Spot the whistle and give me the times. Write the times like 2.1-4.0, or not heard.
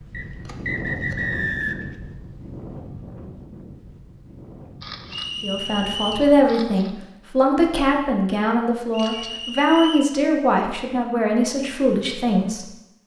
0.1-1.9, 5.1-6.3, 8.9-10.2.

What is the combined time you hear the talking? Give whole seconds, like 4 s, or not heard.
7 s.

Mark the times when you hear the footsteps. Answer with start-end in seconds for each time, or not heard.
not heard.